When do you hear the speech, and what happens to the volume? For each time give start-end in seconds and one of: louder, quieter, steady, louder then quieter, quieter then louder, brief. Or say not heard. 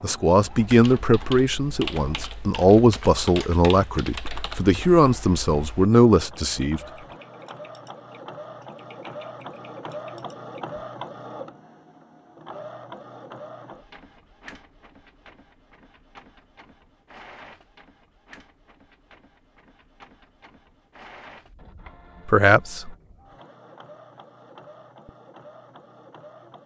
0.0-6.8 steady
22.2-22.9 brief.